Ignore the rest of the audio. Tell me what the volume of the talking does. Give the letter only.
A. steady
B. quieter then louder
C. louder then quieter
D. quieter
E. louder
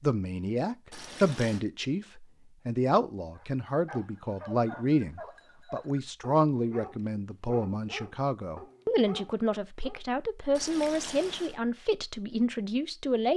A.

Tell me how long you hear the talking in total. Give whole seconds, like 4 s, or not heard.
13 s.